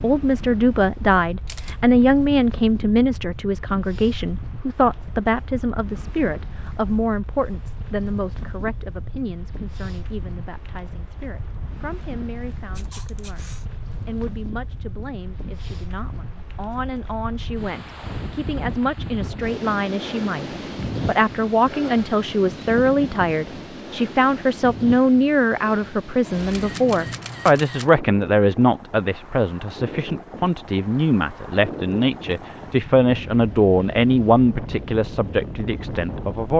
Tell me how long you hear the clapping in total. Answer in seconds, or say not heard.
not heard.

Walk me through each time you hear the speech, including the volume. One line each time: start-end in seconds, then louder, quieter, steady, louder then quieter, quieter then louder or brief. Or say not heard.
0.0-36.5 quieter then louder.